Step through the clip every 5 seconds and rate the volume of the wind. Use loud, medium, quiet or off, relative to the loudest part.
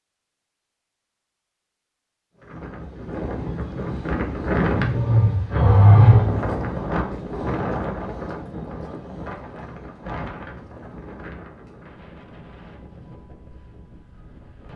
loud, loud, quiet.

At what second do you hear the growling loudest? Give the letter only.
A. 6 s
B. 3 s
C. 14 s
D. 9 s
A.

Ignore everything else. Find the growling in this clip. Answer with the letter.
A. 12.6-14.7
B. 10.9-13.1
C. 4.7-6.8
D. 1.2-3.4
C.